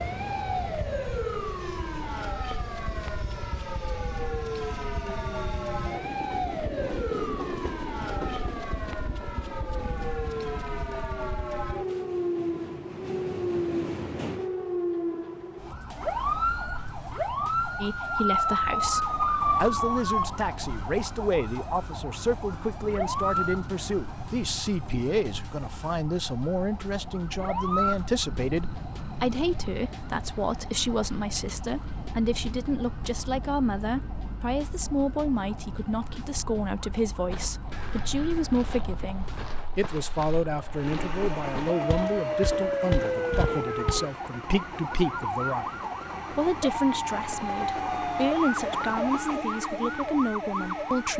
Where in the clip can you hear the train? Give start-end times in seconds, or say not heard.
0.0-14.5, 40.7-51.1.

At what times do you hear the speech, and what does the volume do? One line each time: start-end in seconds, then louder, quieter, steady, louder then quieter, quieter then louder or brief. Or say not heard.
17.8-51.1 steady.